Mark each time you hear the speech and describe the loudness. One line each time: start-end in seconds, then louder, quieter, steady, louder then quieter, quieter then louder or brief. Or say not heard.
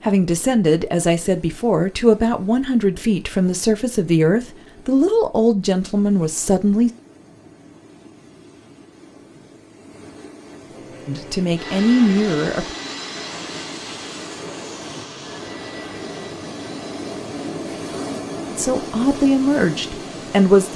0.0-6.9 steady
11.1-12.7 brief
18.5-20.7 brief.